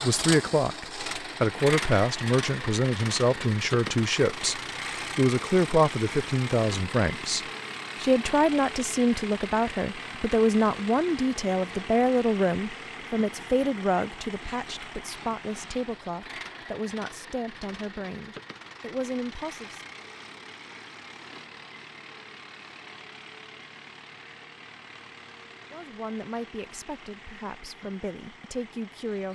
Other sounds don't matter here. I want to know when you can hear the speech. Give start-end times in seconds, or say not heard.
0.0-19.9, 25.7-29.2.